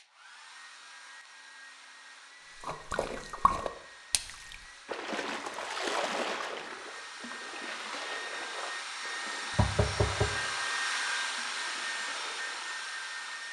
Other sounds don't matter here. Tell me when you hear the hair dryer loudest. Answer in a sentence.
The volume of the hair dryer peaks at 11 seconds.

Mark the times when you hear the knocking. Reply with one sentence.
The knocking can be heard from 9.6 to 10.3 s.